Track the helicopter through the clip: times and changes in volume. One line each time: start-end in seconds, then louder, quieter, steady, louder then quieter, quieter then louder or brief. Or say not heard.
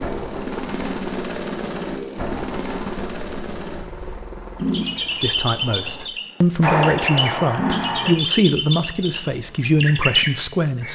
0.0-6.1 quieter.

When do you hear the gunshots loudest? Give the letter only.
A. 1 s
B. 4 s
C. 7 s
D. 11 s
C.